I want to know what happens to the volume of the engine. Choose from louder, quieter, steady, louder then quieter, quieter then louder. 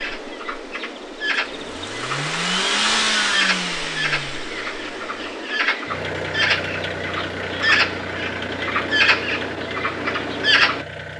louder then quieter.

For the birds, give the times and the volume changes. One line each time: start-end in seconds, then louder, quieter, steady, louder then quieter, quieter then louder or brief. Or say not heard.
0.0-11.1 louder.